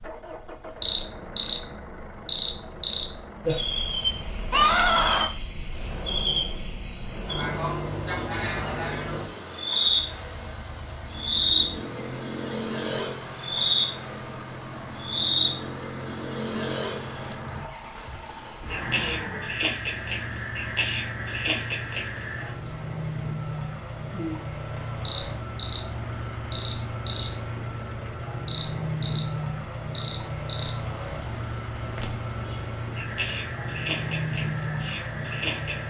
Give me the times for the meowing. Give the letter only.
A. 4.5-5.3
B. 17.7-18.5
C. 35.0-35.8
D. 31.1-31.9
A.